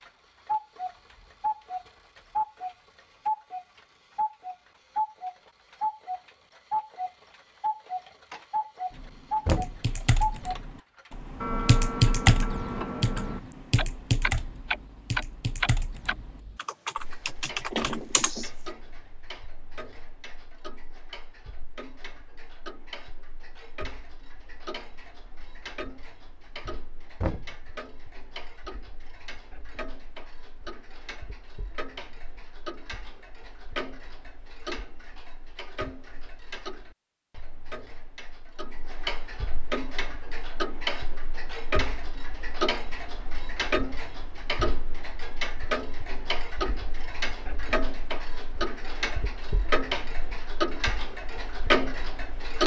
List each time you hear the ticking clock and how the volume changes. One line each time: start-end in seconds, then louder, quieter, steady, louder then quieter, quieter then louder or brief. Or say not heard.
0.0-52.6 quieter then louder.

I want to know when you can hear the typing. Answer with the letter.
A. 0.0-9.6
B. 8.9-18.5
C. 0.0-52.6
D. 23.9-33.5
B.